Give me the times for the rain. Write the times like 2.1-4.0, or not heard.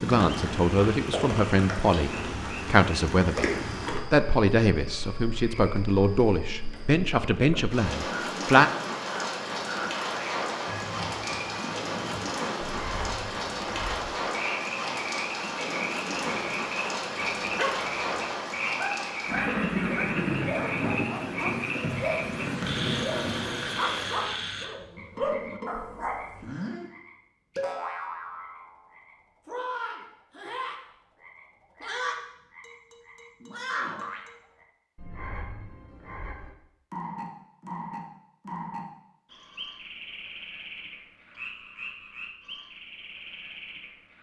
0.0-24.2.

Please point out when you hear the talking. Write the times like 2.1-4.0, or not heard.
0.0-3.5, 4.1-8.7.